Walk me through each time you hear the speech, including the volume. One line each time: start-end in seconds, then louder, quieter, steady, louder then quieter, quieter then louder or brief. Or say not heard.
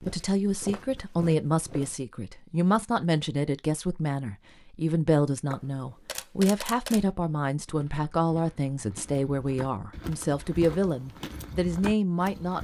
0.0-12.5 steady.